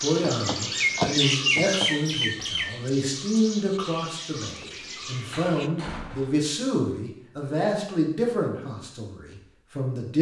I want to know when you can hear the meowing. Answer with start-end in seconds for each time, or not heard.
not heard.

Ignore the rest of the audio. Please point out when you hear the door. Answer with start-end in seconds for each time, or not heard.
0.3-1.9, 5.3-6.4.